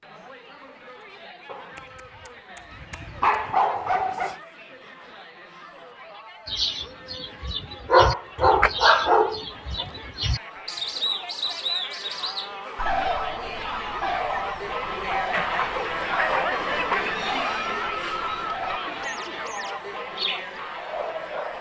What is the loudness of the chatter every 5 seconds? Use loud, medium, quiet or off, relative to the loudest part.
quiet, quiet, medium, loud, medium.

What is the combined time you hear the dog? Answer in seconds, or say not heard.
7 s.